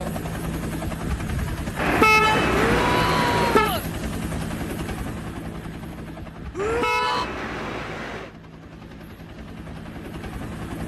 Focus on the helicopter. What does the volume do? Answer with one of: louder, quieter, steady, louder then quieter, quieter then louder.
quieter.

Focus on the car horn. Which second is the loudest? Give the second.
2 s.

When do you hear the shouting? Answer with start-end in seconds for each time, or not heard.
2.5-3.9, 6.5-7.2.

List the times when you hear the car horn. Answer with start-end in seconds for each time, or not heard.
1.8-3.7, 6.5-8.3.